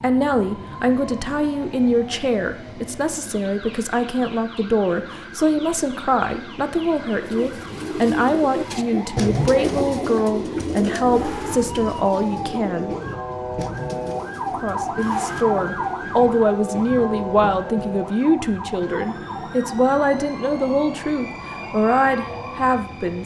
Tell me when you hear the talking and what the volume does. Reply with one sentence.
You can hear the talking from 0.0 to 12.9 s, at a steady volume; and from 14.5 to 23.2 s, at a steady volume.